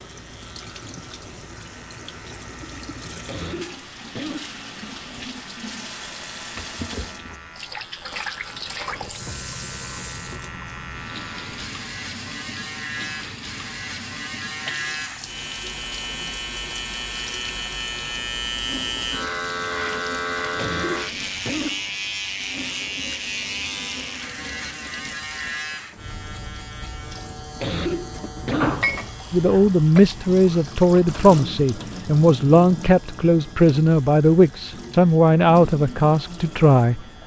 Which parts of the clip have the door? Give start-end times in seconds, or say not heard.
28.5-29.8.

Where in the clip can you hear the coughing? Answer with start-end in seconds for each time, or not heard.
3.2-4.5, 20.6-21.9, 27.6-28.9.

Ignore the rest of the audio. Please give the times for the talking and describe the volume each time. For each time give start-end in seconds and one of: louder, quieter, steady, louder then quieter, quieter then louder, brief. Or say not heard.
29.3-37.0 steady.